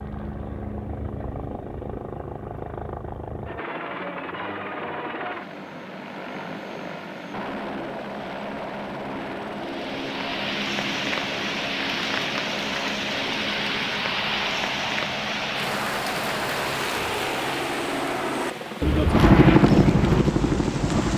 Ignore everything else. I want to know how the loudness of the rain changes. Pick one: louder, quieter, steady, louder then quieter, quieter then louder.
quieter.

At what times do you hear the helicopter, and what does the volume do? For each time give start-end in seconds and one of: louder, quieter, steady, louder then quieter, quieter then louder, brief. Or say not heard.
0.0-21.1 louder.